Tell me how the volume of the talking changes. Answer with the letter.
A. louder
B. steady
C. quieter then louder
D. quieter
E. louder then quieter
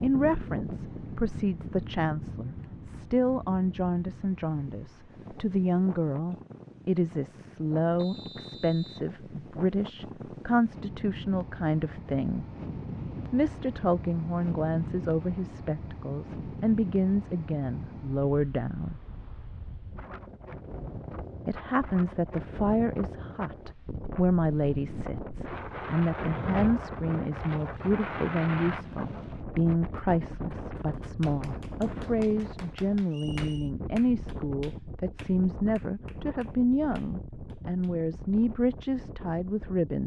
B.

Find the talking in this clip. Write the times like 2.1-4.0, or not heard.
0.0-12.4, 13.3-19.0, 21.4-40.0.